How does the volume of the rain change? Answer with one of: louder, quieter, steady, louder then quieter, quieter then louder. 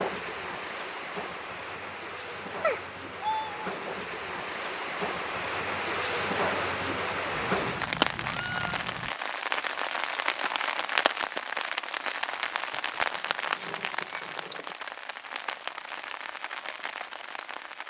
louder then quieter.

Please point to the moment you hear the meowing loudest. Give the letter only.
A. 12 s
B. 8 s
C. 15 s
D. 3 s
D.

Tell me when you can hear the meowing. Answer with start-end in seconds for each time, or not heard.
2.6-3.8, 7.3-9.2, 12.7-14.8.